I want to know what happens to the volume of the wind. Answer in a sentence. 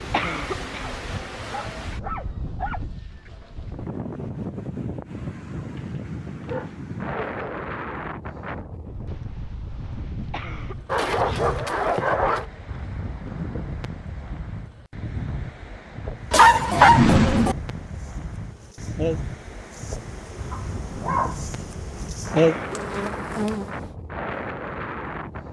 The volume of the wind stays about the same.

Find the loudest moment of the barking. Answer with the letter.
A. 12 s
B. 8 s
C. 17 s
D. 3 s
C.